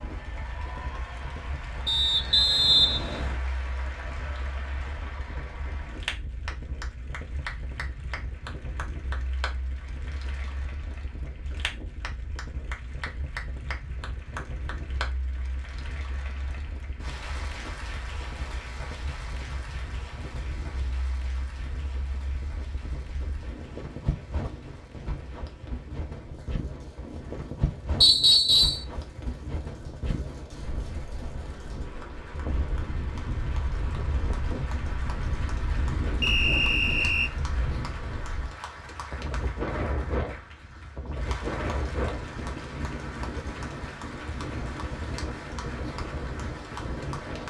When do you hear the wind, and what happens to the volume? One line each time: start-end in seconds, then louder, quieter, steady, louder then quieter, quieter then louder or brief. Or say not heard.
0.0-47.4 louder.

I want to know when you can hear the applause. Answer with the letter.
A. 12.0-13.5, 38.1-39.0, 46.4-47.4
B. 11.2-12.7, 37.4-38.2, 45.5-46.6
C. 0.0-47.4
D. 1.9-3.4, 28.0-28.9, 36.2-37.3
C.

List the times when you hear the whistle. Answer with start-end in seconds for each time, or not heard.
1.9-3.4, 28.0-28.9, 36.2-37.3.